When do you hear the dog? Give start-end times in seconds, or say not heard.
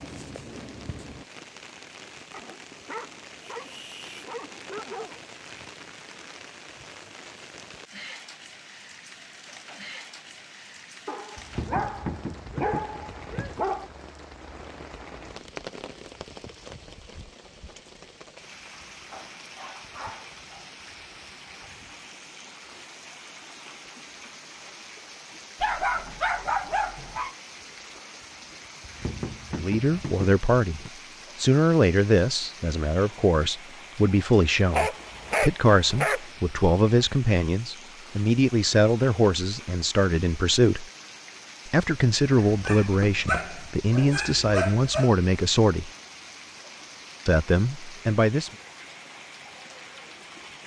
2.3-5.2, 11.1-13.9, 19.1-20.7, 25.6-27.4, 34.7-36.2, 42.4-45.1.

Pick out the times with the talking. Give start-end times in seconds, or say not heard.
29.6-40.9, 41.6-45.9, 47.2-48.5.